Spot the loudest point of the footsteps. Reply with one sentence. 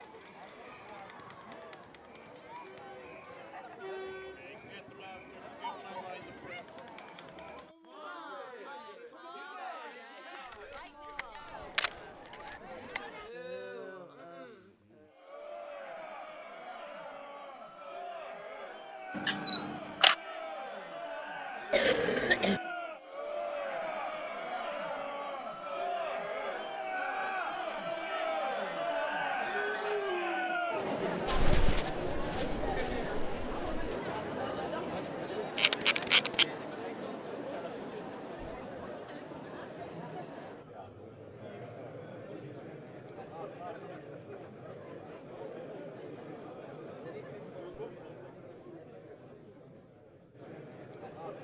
The volume of the footsteps peaks at 32 seconds.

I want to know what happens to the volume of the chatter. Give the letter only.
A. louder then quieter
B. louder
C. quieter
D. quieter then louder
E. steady
A.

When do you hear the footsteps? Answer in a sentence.
You can hear the footsteps from 31.2 to 34.0 s.